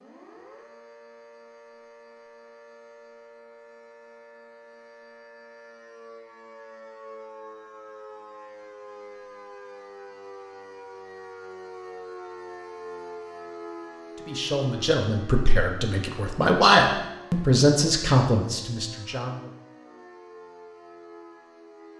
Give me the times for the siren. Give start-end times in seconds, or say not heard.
0.0-21.9.